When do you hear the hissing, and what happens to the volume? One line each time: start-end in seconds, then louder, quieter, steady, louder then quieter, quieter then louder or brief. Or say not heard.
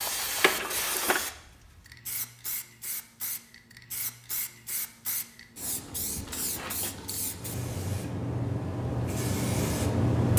0.0-10.3 quieter then louder.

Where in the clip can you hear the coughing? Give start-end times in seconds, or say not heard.
0.1-1.2.